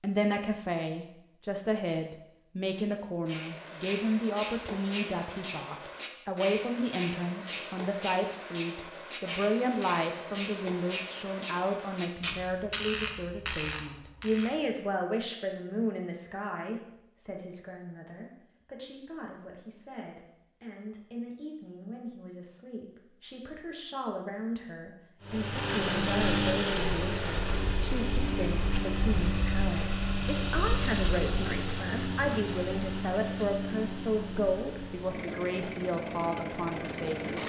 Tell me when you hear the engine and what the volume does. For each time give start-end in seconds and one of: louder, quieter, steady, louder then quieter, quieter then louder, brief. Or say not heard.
25.2-37.4 quieter.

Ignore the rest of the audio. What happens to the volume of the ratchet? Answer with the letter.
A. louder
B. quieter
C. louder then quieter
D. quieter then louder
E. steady
E.